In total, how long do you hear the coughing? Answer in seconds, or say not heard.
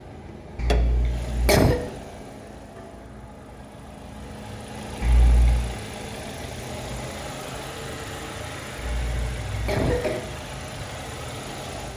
3 s.